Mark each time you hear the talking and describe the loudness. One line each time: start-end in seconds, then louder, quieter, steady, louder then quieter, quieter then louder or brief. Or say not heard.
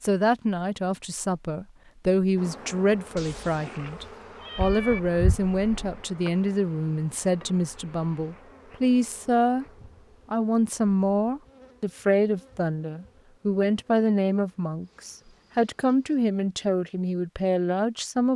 0.0-9.7 steady
10.3-18.3 steady.